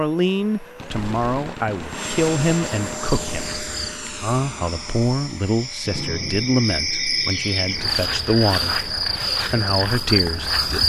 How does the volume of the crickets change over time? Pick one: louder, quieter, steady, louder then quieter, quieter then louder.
louder.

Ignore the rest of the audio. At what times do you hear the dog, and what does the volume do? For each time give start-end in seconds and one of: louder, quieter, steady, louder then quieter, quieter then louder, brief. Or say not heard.
not heard.